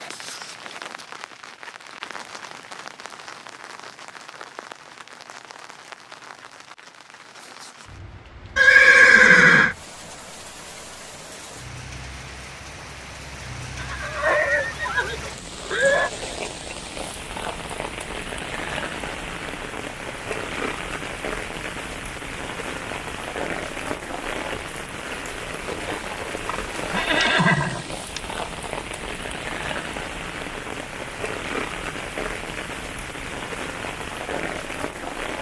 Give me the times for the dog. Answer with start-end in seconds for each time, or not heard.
not heard.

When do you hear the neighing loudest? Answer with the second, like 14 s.
9 s.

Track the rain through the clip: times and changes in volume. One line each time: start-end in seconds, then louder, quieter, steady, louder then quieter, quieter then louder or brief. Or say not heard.
0.0-35.3 louder.